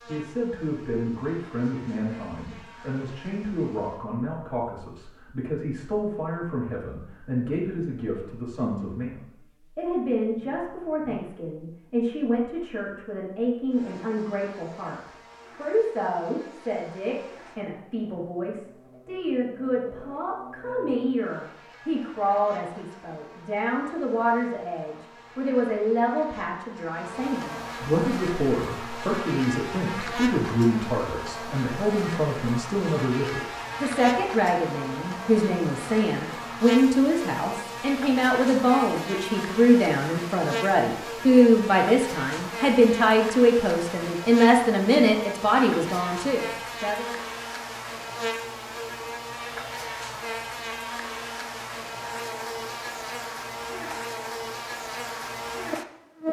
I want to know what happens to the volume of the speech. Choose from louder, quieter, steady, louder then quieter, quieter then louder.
louder.